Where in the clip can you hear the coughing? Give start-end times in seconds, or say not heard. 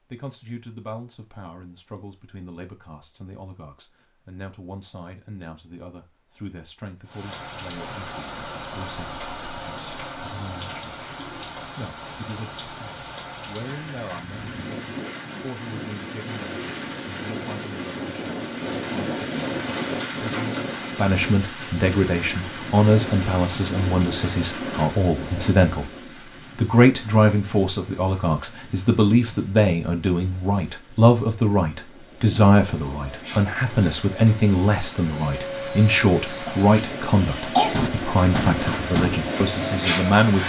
36.5-37.9.